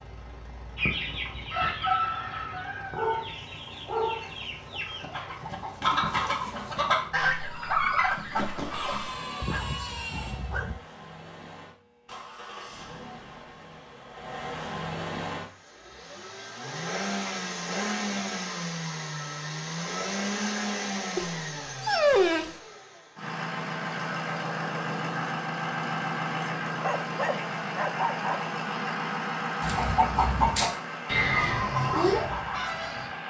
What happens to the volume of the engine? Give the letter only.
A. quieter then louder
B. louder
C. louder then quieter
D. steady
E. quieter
B.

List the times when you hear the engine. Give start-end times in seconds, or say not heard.
0.0-33.2.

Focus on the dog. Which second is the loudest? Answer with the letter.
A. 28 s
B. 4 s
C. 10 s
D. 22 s
D.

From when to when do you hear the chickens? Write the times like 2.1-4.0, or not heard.
0.8-9.0, 29.6-33.1.